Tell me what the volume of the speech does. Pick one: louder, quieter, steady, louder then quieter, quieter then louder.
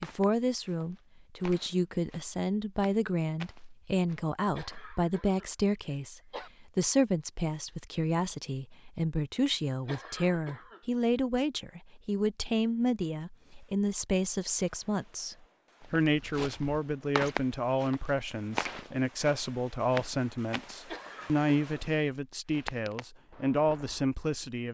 steady.